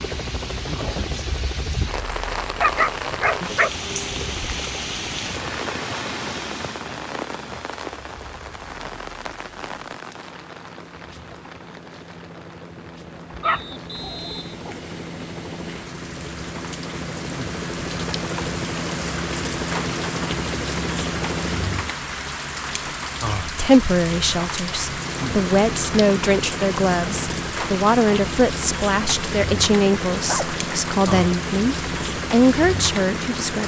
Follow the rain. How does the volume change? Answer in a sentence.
The loudness of the rain goes down, then up.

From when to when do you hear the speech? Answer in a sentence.
The speech can be heard from 23.4 to 33.6 s.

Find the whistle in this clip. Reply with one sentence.
You can hear the whistle from 13.4 to 14.5 s.